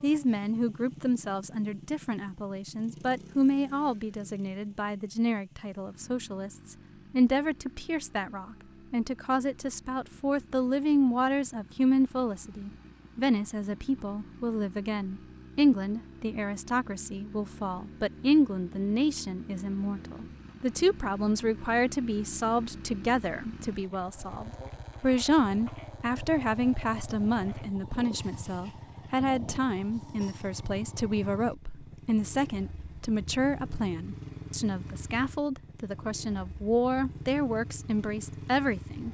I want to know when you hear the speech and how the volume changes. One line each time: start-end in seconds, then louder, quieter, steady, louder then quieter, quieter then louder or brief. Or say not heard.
0.0-39.0 steady.